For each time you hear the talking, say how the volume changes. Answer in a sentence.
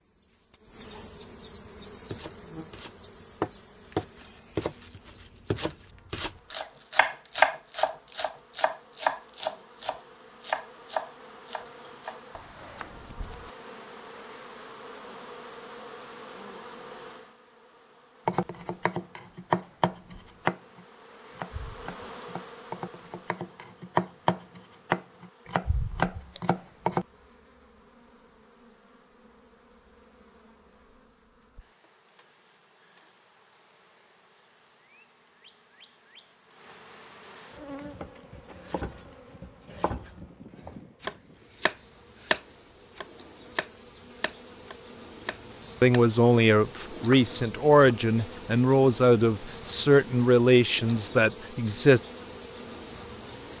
The talking can be heard from 45.8 to 52.0 s, at a steady volume.